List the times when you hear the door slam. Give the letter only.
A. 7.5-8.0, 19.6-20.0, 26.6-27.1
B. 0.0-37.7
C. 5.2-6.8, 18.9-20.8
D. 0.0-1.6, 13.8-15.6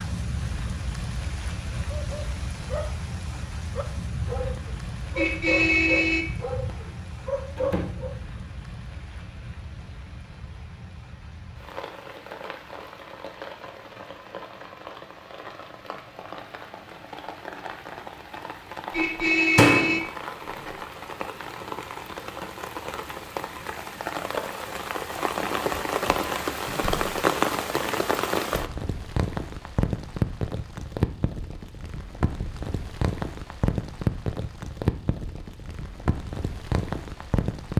A.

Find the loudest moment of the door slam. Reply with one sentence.
The volume of the door slam peaks at 20 seconds.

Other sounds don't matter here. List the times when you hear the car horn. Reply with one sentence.
You can hear the car horn from 5.2 to 6.8 s and from 18.9 to 20.8 s.